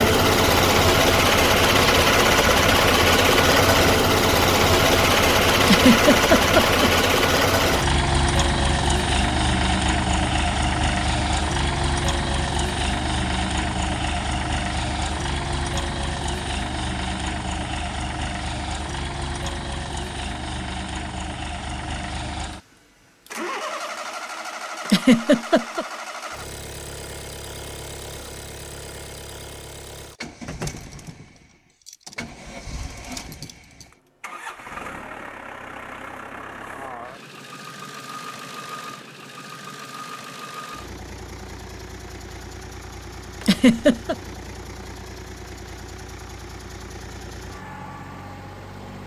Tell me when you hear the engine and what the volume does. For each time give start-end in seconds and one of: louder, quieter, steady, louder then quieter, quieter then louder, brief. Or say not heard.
0.0-49.0 quieter.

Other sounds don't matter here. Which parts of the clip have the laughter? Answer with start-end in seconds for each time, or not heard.
5.7-6.9, 24.9-25.9, 43.4-44.1.